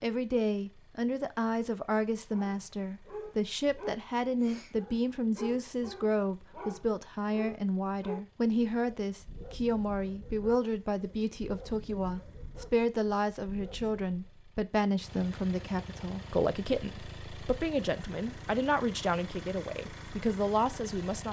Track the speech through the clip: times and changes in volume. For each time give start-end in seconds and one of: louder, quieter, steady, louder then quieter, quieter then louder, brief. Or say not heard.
0.0-21.2 steady.